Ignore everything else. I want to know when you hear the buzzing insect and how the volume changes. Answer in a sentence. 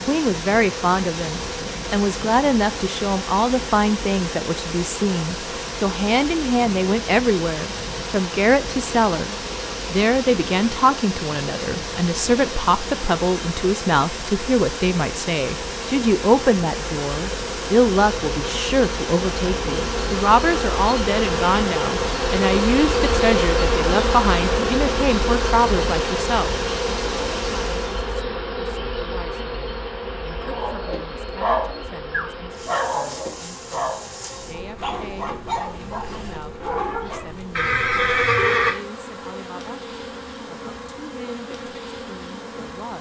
The buzzing insect can be heard from 0.0 to 42.9 s, getting louder then quieter.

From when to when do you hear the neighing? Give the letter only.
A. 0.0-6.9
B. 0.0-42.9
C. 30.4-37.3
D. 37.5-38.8
D.